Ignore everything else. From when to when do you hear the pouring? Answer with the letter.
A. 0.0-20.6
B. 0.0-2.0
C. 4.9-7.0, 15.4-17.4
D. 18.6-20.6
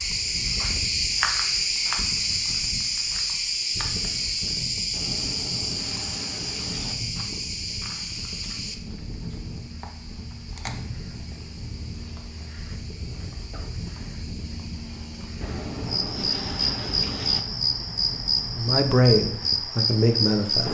C.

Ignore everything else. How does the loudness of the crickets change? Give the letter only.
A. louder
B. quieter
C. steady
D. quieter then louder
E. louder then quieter
D.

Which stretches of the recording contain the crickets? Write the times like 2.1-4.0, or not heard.
0.0-20.6.